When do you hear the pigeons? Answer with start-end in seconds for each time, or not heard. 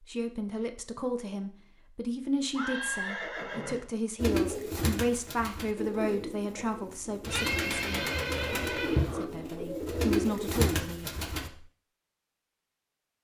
4.2-11.5.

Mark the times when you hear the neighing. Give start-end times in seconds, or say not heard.
2.5-3.9, 7.2-9.2.